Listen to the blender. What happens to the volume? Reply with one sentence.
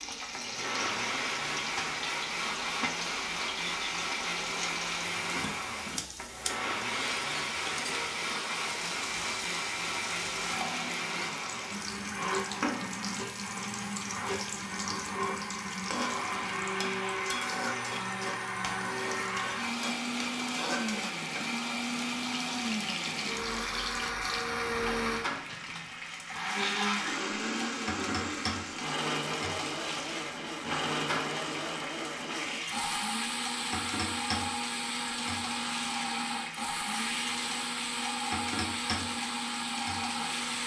The loudness of the blender stays about the same.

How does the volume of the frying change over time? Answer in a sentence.
The loudness of the frying stays about the same.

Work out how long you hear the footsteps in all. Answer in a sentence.
The footsteps can't be heard in this clip.